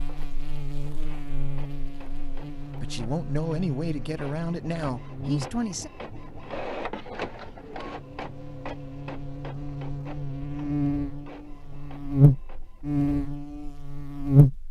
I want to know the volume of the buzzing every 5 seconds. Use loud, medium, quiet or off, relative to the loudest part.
quiet, quiet, loud.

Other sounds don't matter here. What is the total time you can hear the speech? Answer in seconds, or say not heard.
3 s.